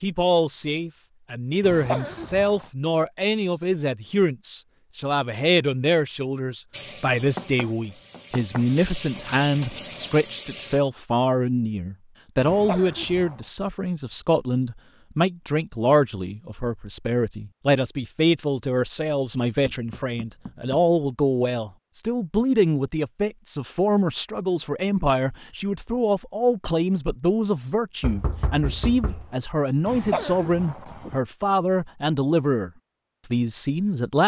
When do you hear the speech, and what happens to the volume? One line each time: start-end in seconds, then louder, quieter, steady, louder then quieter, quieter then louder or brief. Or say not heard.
0.0-34.2 steady.